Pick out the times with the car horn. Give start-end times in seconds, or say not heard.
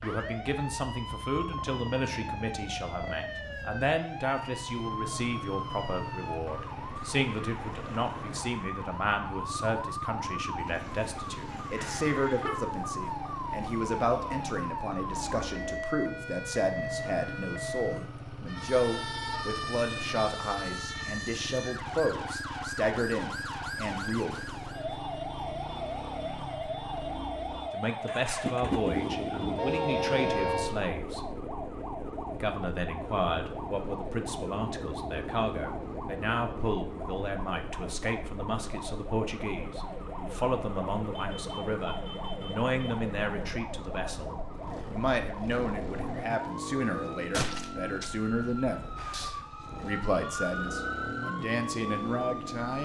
11.8-12.6, 28.6-30.8, 41.1-42.6.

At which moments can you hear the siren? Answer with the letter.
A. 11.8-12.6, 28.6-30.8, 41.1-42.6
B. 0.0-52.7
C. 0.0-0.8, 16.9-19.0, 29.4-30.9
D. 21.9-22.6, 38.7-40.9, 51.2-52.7
B.